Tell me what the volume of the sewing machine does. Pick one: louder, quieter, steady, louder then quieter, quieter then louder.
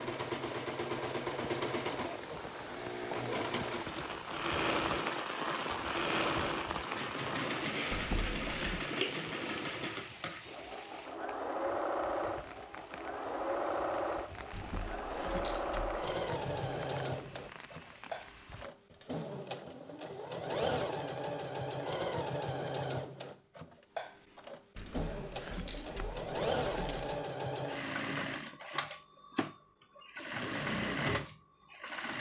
steady.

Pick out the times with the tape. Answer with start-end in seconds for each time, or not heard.
not heard.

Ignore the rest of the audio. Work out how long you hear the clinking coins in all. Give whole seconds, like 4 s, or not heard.
5 s.